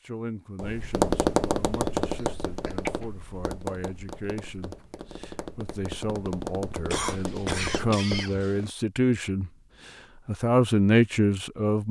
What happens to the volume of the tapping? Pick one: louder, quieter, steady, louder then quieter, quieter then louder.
quieter then louder.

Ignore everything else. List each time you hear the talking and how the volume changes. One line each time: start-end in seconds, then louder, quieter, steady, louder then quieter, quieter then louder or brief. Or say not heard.
0.0-11.8 louder.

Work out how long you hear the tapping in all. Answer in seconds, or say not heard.
8 s.